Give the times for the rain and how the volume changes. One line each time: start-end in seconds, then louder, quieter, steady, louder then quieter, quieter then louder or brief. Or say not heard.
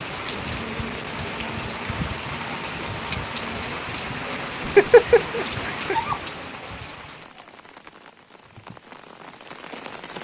0.0-10.2 quieter.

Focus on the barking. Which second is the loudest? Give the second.
5 s.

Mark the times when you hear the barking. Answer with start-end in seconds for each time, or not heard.
4.7-6.2.